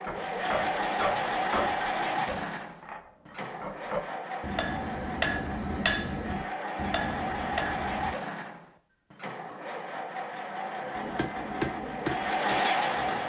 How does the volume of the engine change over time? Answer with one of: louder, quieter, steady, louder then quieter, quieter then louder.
quieter then louder.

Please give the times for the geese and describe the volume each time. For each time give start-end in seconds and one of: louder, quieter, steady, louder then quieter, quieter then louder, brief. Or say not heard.
not heard.